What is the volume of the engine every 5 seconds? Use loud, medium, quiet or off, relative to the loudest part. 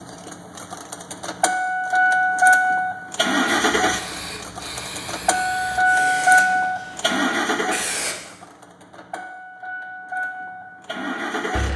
loud, loud, medium.